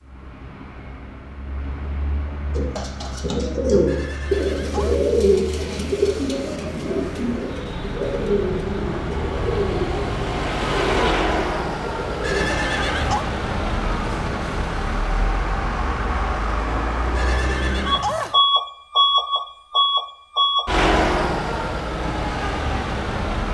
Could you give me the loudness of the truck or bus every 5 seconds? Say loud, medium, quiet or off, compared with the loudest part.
quiet, medium, loud, loud, loud.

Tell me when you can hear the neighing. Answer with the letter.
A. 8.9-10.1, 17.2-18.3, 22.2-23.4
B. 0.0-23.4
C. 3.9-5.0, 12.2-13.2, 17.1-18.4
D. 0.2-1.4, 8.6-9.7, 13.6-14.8
C.